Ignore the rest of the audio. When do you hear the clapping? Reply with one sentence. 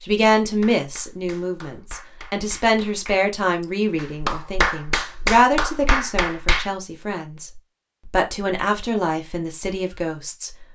The clapping can be heard from 0.4 to 6.7 s.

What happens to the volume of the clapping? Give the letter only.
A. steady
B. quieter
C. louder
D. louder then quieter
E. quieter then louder
C.